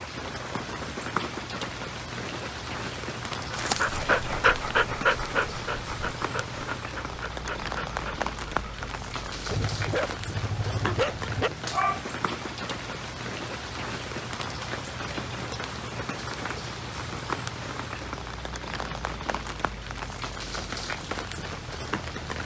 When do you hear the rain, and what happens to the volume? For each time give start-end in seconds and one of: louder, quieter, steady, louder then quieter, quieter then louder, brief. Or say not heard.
0.0-22.4 steady.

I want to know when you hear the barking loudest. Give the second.
5 s.